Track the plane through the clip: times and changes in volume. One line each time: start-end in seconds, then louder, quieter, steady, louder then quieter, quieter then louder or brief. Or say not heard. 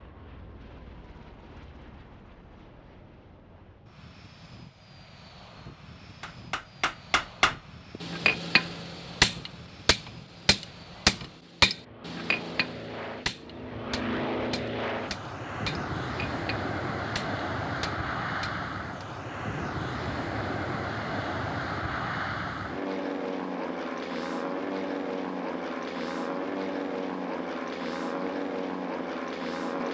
0.0-29.8 louder.